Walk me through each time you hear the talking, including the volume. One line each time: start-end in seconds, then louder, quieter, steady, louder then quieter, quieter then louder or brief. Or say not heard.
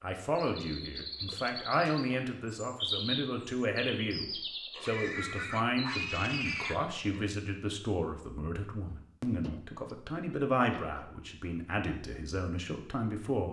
0.0-13.4 steady.